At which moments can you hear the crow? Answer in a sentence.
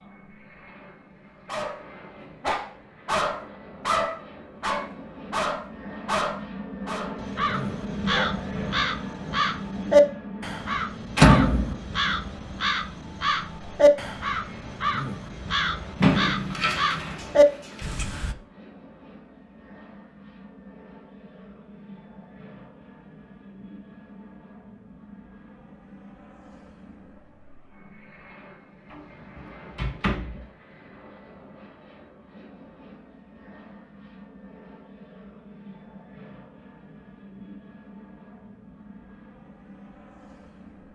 You can hear the crow from 7.2 to 18.4 s.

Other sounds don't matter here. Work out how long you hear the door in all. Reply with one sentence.
You can hear the door for 4 seconds altogether.